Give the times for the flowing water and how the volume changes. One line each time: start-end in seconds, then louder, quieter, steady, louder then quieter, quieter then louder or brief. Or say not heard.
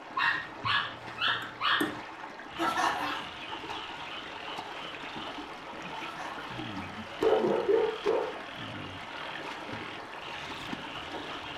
0.0-11.5 steady.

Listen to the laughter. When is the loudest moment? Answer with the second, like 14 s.
3 s.